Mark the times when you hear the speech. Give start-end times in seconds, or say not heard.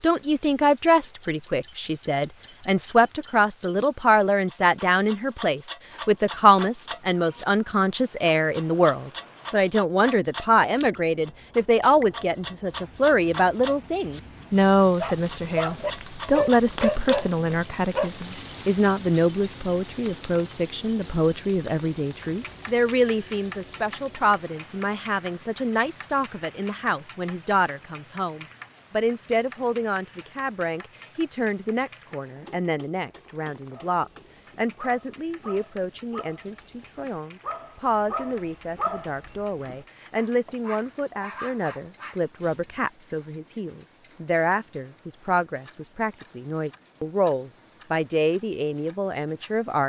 0.0-49.8.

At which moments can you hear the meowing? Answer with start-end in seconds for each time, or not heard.
not heard.